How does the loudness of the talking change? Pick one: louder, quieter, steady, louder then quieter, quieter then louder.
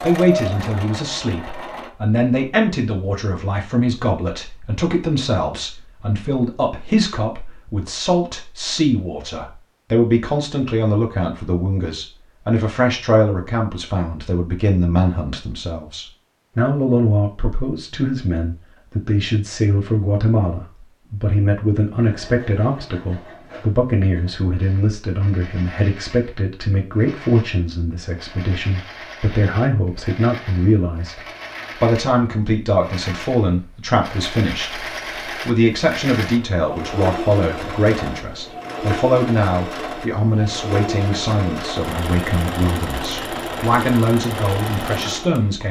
steady.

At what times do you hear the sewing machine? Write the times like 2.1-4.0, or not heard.
0.0-1.9, 21.9-45.6.